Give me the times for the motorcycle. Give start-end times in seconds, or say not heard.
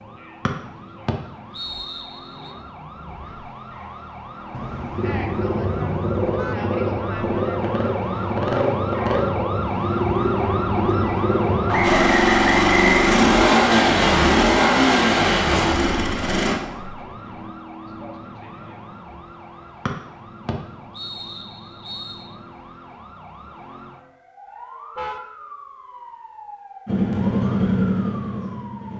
5.0-16.6, 26.9-28.9.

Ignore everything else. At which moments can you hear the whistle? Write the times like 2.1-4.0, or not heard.
0.5-2.5, 11.7-13.1, 19.9-22.2.